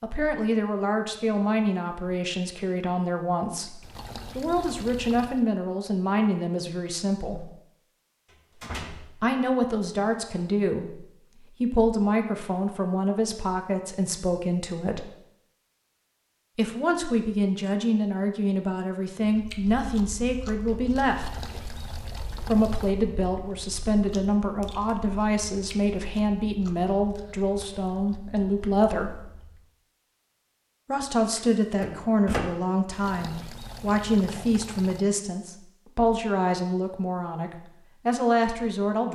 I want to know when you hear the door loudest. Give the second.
32 s.